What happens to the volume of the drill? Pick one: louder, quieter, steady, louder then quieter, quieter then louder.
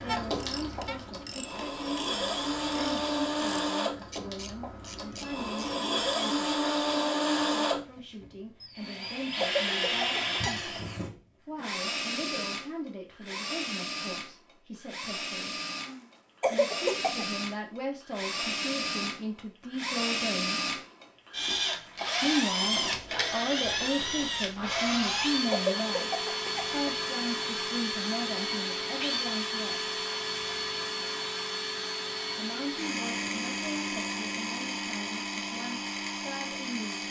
steady.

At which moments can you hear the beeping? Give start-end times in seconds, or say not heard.
not heard.